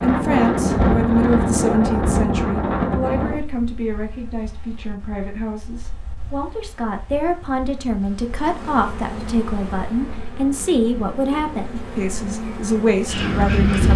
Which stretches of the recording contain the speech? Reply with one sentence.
The speech can be heard from 0.0 to 13.9 s.